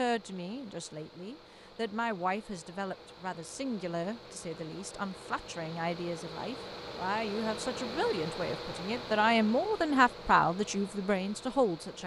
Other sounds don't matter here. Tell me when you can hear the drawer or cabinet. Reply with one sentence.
You can't hear the drawer or cabinet here.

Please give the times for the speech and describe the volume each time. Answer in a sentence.
The speech can be heard from 0.0 to 12.0 s, getting louder.